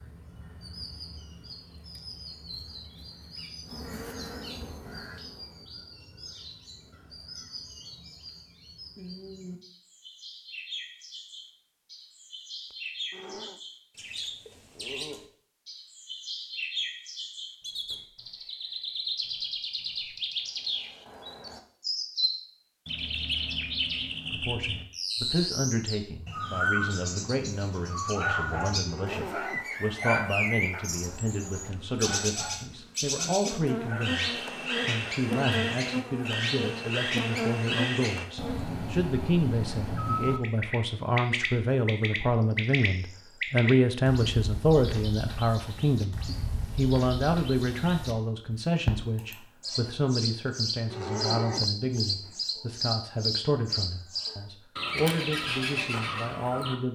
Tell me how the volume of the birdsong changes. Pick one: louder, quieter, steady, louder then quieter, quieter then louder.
louder.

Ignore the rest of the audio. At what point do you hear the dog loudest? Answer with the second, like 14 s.
30 s.